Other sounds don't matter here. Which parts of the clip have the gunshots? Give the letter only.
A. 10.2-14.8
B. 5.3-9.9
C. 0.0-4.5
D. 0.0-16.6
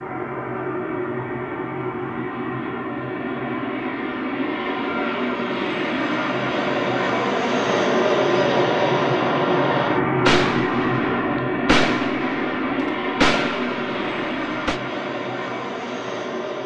A.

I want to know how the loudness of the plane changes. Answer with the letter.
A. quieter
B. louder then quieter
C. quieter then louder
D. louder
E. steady
B.